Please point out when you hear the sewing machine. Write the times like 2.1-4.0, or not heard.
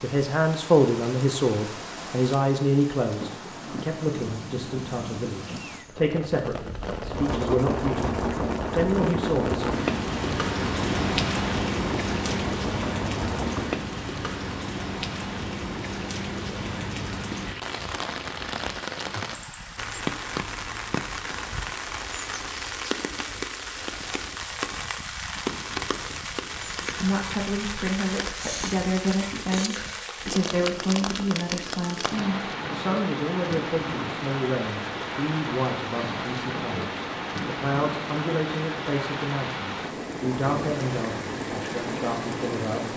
7.0-13.8.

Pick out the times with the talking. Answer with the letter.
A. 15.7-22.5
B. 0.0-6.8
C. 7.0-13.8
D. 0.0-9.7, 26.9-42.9
D.